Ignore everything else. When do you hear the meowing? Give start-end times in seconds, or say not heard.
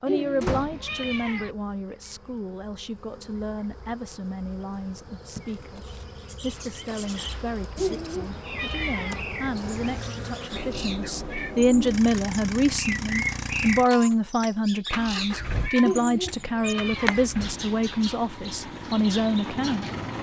0.1-1.6, 7.8-9.2, 15.8-17.3.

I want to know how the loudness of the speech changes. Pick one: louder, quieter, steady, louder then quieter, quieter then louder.
louder.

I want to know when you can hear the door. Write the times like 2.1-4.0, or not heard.
0.4-0.8.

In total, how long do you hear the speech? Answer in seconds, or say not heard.
20 s.